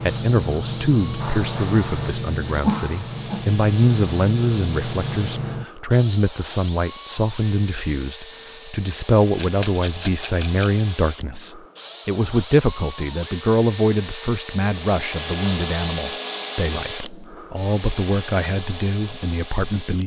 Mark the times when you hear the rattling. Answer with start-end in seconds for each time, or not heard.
9.3-10.8.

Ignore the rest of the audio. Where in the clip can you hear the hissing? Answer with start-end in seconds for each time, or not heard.
0.0-5.7.